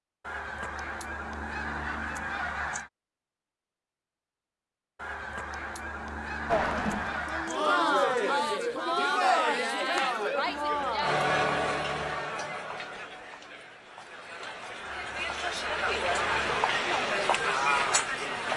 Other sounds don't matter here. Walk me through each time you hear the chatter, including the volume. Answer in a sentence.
The chatter can be heard from 6.5 to 18.5 s, getting quieter then louder.